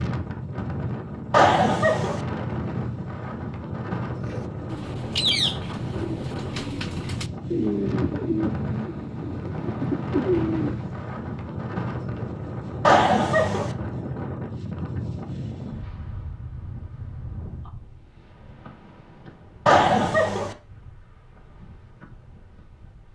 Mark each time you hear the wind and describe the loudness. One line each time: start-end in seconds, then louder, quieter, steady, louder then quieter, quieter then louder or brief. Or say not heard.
0.0-23.0 quieter.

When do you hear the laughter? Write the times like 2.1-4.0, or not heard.
1.3-2.2, 12.8-13.8, 19.6-20.6.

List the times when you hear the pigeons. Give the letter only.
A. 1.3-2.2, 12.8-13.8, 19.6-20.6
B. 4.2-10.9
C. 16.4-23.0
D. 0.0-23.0
B.